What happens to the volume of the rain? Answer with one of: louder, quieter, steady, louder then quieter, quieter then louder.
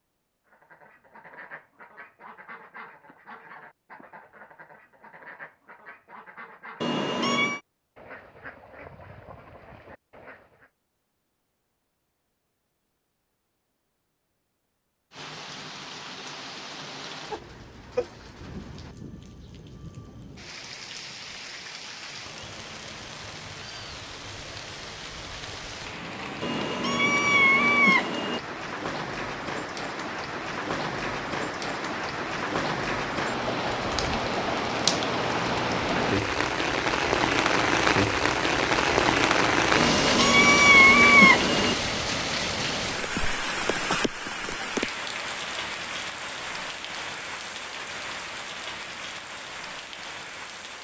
louder then quieter.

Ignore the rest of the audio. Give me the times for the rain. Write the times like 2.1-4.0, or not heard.
15.1-50.8.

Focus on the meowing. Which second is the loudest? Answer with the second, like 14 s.
41 s.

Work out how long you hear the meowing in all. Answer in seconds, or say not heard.
5 s.